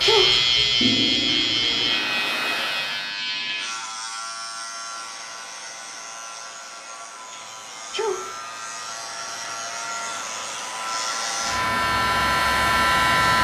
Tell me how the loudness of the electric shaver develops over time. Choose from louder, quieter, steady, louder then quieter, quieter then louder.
quieter then louder.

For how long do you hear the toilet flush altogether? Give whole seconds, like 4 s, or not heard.
2 s.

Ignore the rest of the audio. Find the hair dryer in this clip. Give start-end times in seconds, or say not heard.
0.0-3.1, 4.7-13.3.